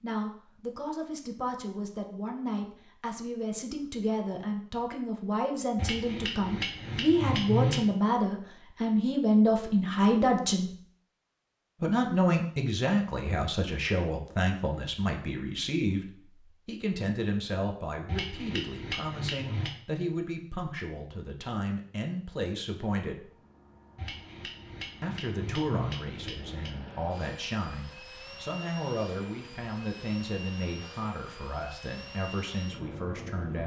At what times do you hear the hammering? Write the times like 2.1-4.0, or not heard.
5.8-7.9, 18.1-19.8, 23.9-26.8.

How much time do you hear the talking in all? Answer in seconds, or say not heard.
31 s.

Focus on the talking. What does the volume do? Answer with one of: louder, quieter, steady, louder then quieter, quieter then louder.
louder then quieter.